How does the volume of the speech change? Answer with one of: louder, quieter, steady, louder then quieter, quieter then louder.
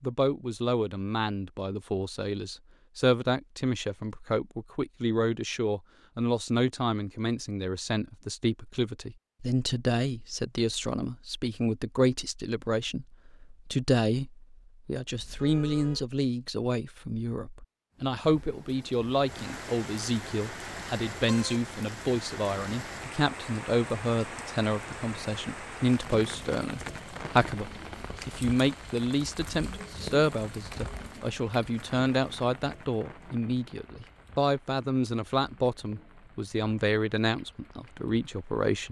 steady.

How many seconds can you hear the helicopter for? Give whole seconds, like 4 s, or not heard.
not heard.